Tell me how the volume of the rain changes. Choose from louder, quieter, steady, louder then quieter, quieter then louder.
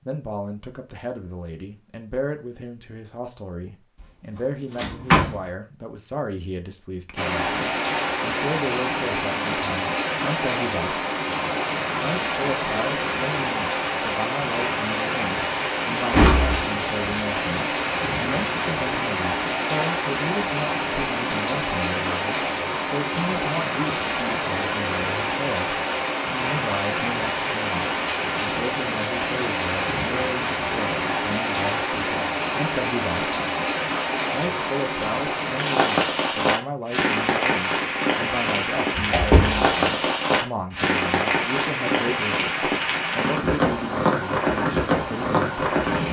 steady.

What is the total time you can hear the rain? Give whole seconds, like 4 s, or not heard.
39 s.